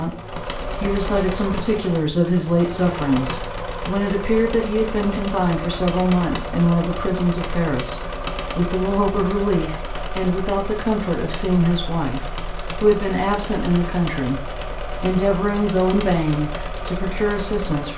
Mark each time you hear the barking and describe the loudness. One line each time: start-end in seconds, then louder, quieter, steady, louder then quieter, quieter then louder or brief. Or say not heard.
not heard.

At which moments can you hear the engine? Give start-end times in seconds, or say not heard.
0.0-17.9.